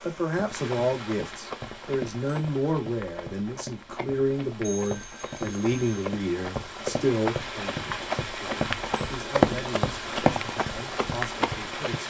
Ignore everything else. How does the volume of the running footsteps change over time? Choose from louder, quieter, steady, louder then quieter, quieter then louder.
louder.